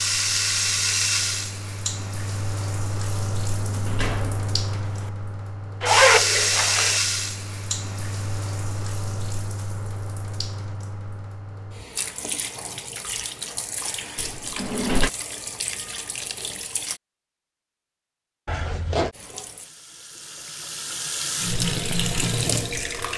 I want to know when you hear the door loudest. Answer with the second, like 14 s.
15 s.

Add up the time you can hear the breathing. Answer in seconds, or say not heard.
not heard.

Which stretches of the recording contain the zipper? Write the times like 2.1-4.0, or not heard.
5.8-7.0, 18.4-19.1.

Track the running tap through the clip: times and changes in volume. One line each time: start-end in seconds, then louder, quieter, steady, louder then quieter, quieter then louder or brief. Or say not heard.
0.0-17.0 quieter
19.1-23.1 louder.